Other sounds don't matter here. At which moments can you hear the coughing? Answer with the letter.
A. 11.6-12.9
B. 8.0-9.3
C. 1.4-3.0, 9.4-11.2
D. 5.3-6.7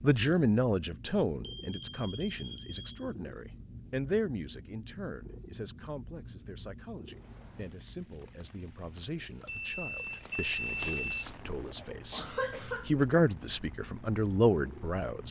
A.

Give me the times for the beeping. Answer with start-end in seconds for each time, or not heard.
1.4-3.0, 9.4-11.2.